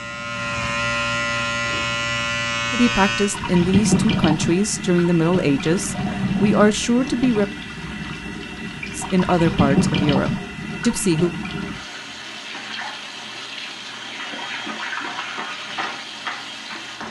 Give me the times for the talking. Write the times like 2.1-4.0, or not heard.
2.7-7.5, 8.9-11.3.